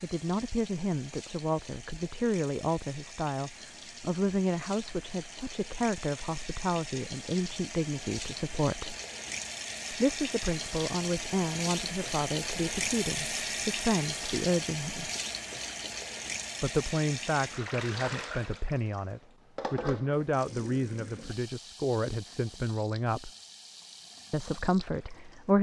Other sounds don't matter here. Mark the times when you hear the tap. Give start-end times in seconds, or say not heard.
0.0-25.5.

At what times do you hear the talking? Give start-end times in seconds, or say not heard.
0.0-8.9, 9.9-15.1, 16.6-23.3, 24.3-25.5.